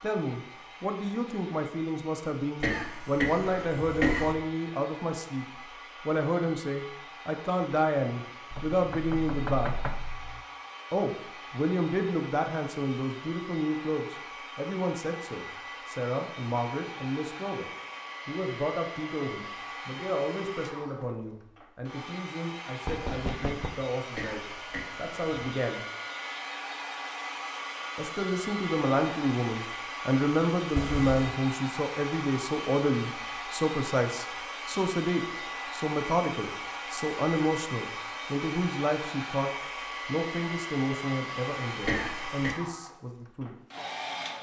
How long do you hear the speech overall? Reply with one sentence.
The speech can be heard for 40 seconds in total.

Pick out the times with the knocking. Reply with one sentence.
The knocking can be heard from 8.5 to 10.4 s, from 22.9 to 23.8 s and from 30.8 to 31.3 s.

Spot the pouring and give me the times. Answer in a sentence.
You can't hear the pouring here.